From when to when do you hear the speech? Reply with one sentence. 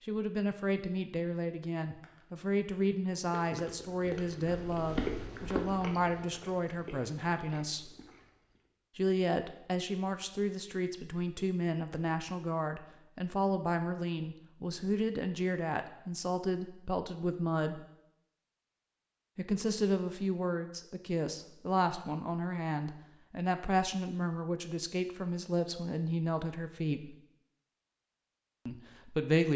You can hear the speech from 0.0 to 7.9 s, from 8.9 to 17.9 s, from 19.4 to 27.1 s and from 28.6 to 29.5 s.